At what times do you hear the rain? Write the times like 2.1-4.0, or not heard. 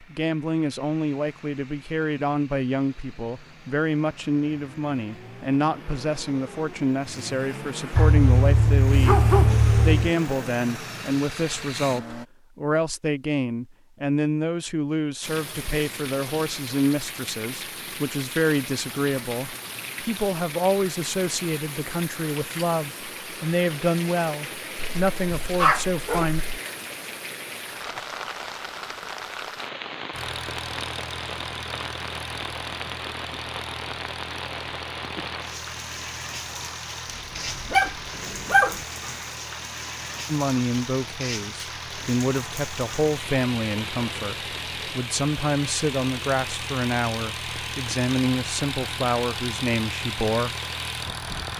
15.2-51.5.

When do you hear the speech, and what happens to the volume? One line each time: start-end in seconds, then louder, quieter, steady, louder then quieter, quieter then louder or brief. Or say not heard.
0.0-26.4 steady
40.2-50.5 steady.